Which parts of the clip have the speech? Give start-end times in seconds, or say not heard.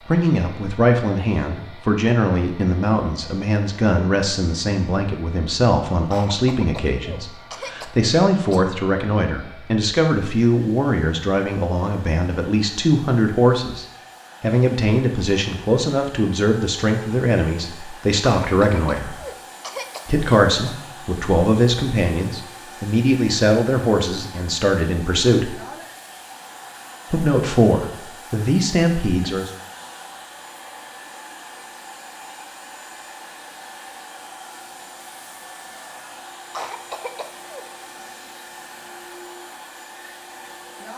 0.1-19.1, 20.1-25.6, 27.1-29.5.